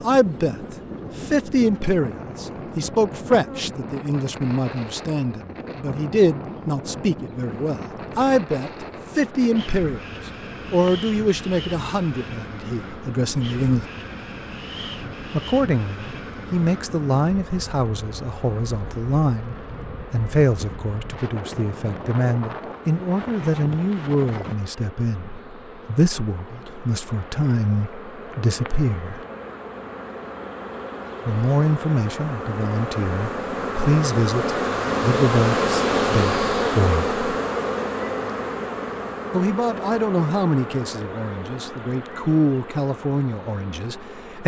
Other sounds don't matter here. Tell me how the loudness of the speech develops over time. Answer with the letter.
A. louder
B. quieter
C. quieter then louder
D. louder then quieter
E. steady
E.